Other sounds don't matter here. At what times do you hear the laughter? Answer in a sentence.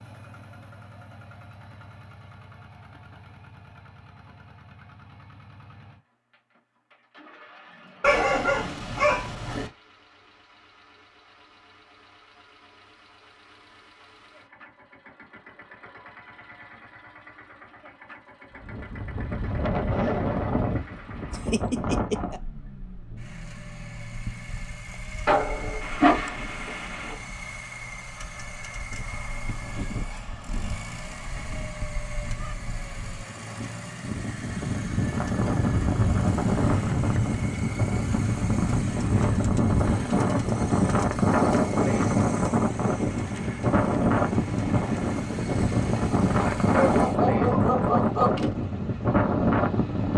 You can hear the laughter from 21.3 to 22.4 s.